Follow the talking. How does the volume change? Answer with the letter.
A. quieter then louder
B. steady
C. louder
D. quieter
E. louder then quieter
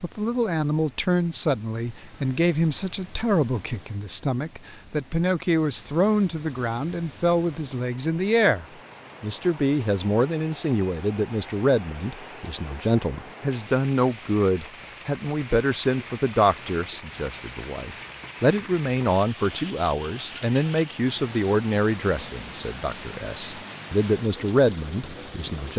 B.